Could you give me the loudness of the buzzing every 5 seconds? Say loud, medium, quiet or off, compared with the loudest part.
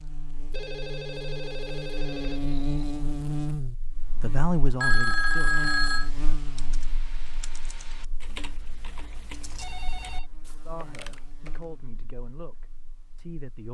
loud, medium, quiet.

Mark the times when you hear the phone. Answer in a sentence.
The phone can be heard from 0.5 to 3.0 s, from 4.8 to 6.1 s and from 9.6 to 10.3 s.